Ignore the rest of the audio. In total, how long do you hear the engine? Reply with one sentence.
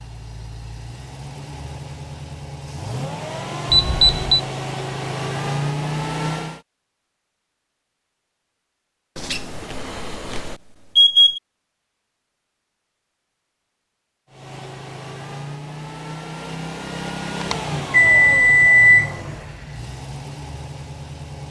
The engine can be heard for 14 seconds in total.